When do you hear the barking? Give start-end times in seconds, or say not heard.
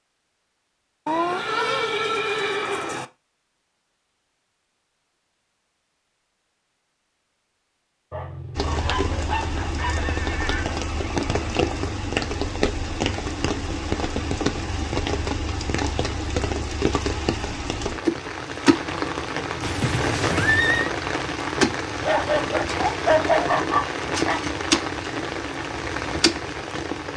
8.1-10.0, 22.0-24.4.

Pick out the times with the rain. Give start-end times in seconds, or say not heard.
8.6-27.1.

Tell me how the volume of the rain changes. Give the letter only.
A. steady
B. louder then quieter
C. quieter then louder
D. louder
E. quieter
A.